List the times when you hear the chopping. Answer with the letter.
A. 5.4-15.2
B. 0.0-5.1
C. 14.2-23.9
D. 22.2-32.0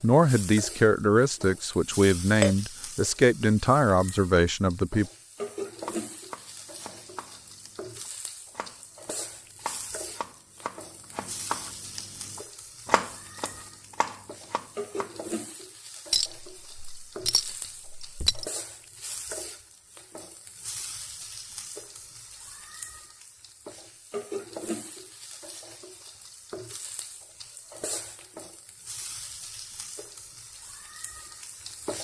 A.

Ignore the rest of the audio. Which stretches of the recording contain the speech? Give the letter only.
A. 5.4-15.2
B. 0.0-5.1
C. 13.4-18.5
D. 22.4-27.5
B.